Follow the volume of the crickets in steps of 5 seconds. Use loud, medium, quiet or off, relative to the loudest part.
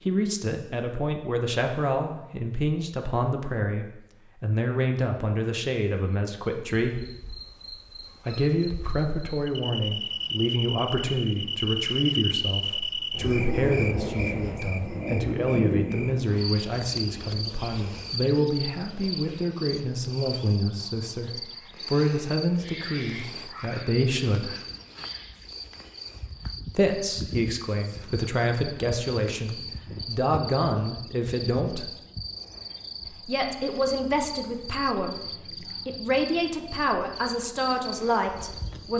off, medium, loud, loud, medium, medium, medium, medium.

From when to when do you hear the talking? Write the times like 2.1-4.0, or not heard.
0.1-7.0, 8.2-24.5, 26.8-31.9, 33.1-35.2, 35.9-38.9.